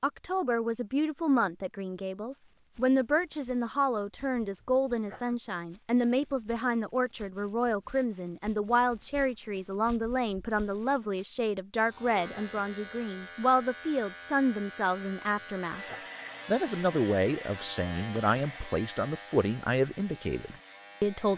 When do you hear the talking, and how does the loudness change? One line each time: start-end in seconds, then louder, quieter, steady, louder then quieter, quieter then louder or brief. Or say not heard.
0.0-21.3 steady.